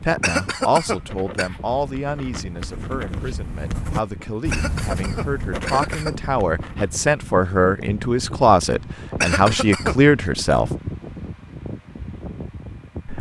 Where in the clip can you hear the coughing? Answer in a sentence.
The coughing can be heard from 0.2 to 1.5 s, from 4.5 to 6.2 s and from 9.2 to 9.9 s.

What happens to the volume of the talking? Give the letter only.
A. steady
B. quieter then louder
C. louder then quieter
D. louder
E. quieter
B.